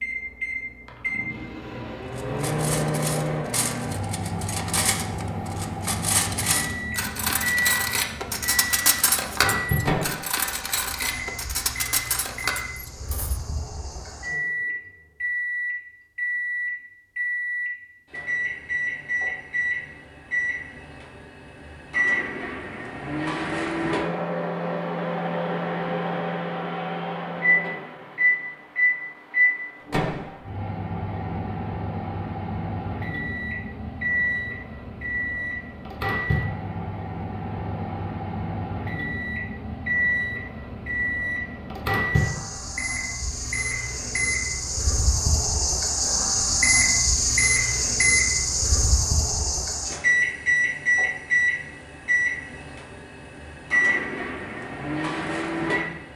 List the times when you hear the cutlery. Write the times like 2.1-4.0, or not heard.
2.1-13.4.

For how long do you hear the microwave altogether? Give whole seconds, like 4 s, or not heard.
56 s.